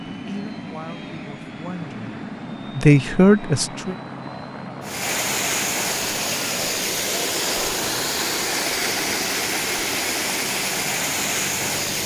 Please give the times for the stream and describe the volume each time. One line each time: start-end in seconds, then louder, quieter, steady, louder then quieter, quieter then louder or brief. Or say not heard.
4.8-12.0 steady.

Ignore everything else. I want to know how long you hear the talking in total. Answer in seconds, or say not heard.
4 s.